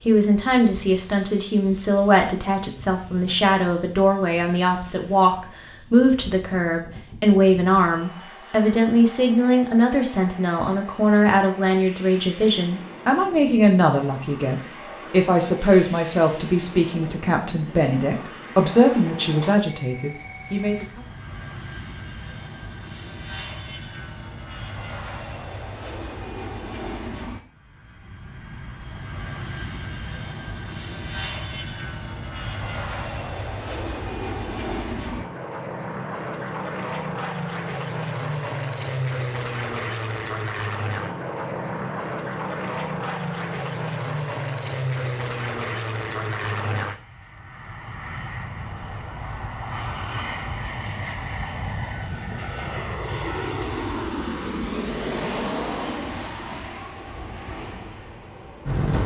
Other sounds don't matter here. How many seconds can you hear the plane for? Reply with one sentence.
The plane can be heard for 59 seconds in total.